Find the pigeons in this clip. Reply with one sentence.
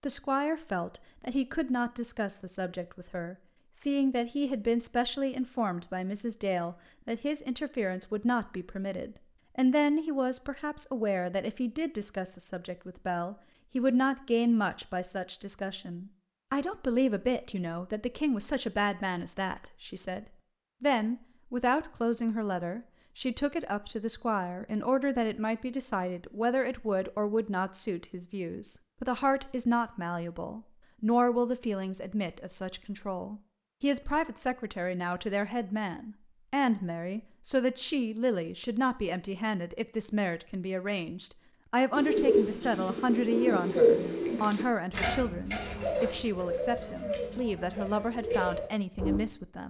You can hear the pigeons from 41.9 to 49.2 s.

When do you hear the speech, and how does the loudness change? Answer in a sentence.
The speech can be heard from 0.0 to 49.6 s, at a steady volume.